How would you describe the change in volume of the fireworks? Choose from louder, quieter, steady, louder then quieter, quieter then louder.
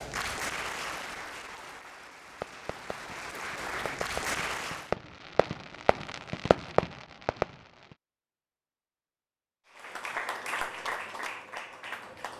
louder.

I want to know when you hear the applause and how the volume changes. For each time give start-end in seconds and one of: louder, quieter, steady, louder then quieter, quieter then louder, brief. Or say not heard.
0.0-4.9 quieter then louder
9.7-12.3 brief.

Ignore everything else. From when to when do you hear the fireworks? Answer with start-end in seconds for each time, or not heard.
2.2-8.0.